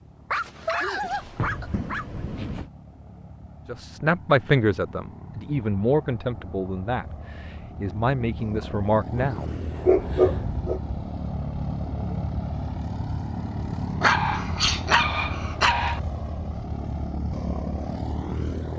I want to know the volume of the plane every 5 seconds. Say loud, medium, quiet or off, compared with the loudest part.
quiet, medium, loud, loud.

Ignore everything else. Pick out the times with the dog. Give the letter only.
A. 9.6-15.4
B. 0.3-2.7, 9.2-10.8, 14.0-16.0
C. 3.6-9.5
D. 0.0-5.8
B.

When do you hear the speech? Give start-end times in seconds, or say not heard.
3.6-9.5.